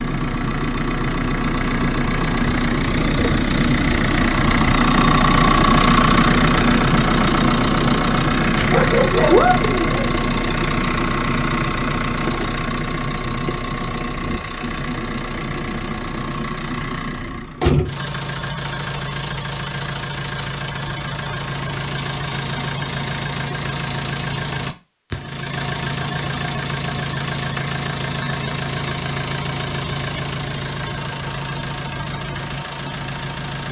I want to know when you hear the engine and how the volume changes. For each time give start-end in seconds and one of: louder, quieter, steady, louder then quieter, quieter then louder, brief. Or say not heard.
0.0-33.6 quieter.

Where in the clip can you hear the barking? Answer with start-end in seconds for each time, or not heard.
8.6-10.1.